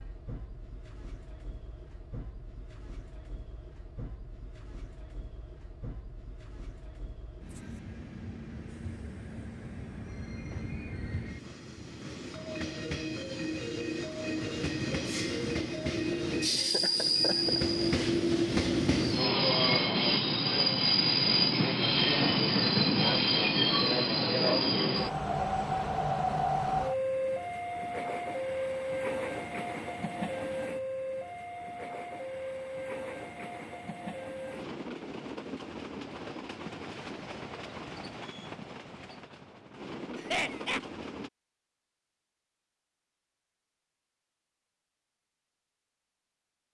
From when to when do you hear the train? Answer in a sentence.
The train can be heard from 0.0 to 41.3 s.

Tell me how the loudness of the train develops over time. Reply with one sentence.
The volume of the train goes up, then down.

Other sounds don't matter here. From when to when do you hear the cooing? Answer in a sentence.
The cooing can't be heard in this clip.